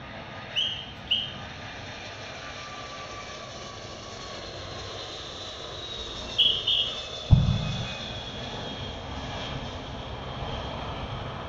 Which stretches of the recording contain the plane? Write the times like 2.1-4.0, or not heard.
0.0-11.4.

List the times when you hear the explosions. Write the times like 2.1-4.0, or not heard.
7.3-8.0.